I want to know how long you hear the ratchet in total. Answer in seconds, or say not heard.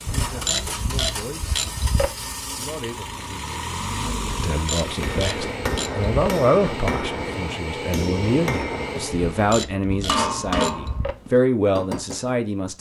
6 s.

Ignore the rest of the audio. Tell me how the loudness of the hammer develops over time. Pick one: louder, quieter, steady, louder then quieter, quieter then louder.
steady.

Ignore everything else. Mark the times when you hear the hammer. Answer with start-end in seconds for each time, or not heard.
4.8-12.3.